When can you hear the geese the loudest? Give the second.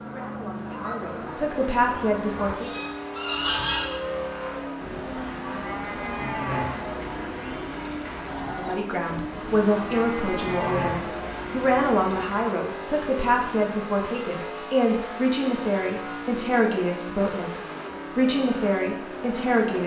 4 s.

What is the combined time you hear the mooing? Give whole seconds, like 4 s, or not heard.
9 s.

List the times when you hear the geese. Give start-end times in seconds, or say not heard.
0.0-4.2.